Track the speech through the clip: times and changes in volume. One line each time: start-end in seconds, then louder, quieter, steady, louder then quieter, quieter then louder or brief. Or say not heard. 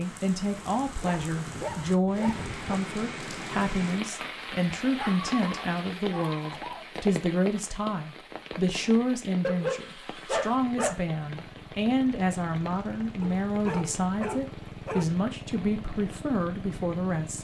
0.0-17.3 steady.